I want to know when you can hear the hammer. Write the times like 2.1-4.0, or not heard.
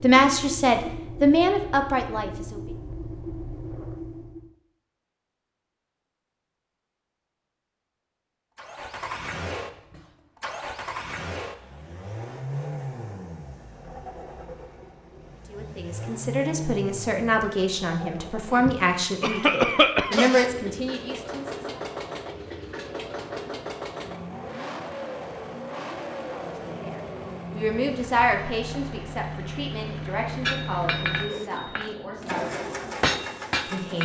30.4-34.0.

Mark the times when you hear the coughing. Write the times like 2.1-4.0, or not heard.
19.2-20.4.